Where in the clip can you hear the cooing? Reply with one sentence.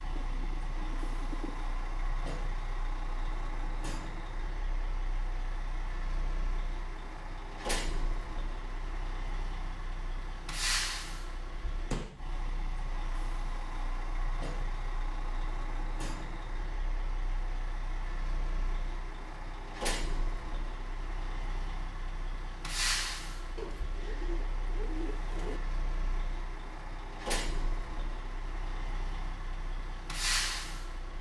The cooing can be heard from 0.1 to 1.6 s and from 23.6 to 25.6 s.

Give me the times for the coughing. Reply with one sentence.
You can't hear the coughing here.